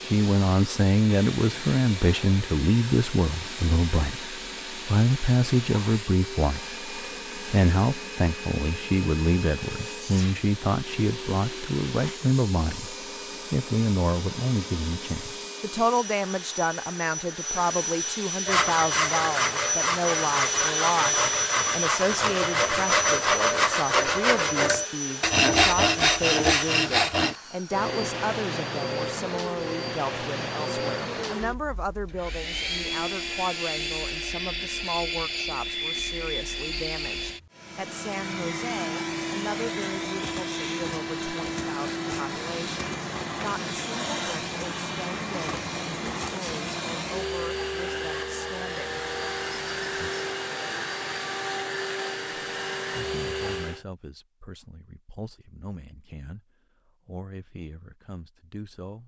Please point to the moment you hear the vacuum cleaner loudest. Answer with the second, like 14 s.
21 s.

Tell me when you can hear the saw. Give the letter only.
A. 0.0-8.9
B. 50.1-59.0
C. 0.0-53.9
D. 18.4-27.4
D.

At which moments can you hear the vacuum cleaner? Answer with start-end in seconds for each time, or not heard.
0.0-53.9.